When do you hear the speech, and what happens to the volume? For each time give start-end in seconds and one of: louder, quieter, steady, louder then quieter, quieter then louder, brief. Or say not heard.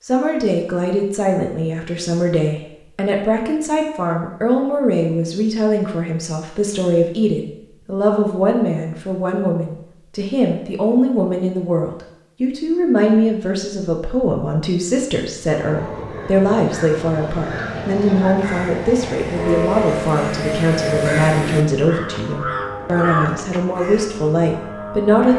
0.0-25.3 steady.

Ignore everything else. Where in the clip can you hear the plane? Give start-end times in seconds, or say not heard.
15.4-25.3.